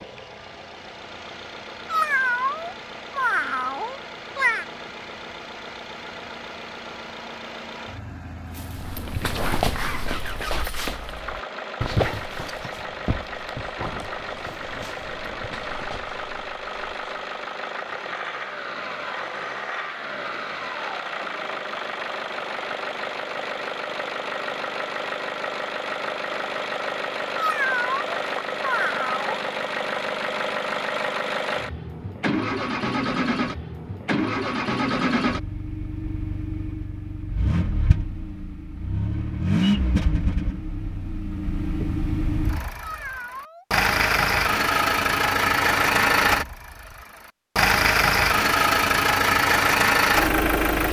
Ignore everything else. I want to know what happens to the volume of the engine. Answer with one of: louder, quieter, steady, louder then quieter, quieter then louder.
louder.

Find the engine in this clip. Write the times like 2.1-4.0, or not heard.
0.0-50.8.